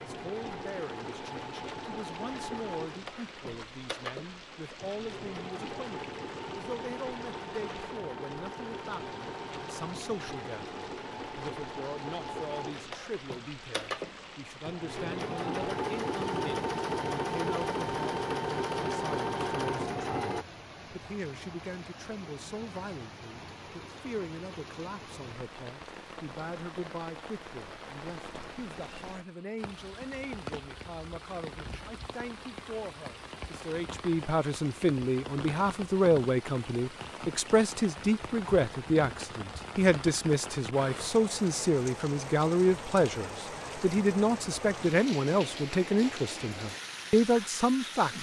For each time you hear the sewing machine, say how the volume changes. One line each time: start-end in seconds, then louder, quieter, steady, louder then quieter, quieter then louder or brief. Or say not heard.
0.0-20.4 louder.